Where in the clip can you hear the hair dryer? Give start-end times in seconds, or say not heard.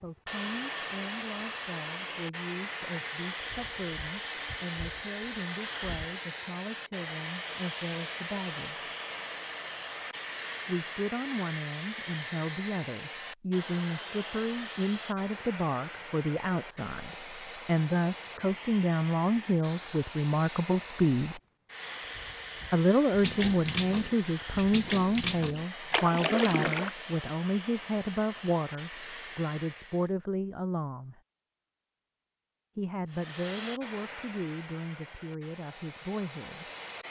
0.0-30.1, 33.1-37.0.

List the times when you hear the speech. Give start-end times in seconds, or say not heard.
0.0-8.9, 10.7-21.4, 22.7-31.2, 32.8-36.7.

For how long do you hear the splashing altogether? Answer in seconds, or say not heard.
4 s.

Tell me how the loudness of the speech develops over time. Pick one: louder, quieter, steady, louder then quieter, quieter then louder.
louder then quieter.